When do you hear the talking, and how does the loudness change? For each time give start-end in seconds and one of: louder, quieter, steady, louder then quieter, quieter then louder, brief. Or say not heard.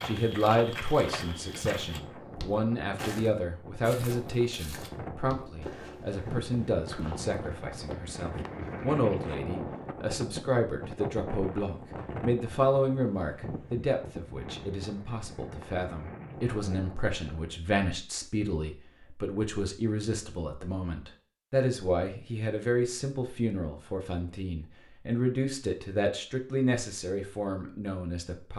0.0-28.5 steady.